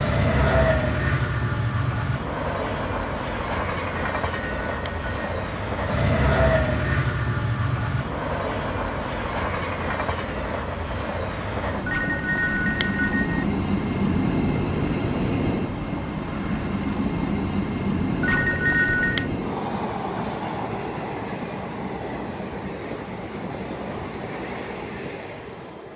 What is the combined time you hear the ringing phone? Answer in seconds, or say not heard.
4 s.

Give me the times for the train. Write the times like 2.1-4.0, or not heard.
0.0-25.9.